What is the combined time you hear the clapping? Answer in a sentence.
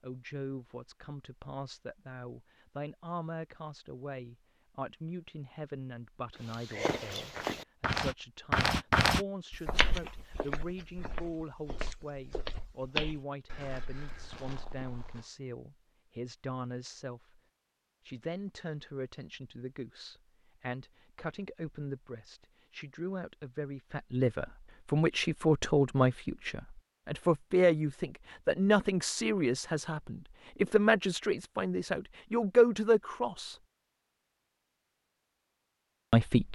You can't hear the clapping here.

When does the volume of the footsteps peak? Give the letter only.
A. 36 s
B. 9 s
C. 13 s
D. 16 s
B.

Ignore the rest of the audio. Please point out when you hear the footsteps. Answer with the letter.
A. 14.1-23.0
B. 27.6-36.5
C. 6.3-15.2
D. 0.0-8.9
C.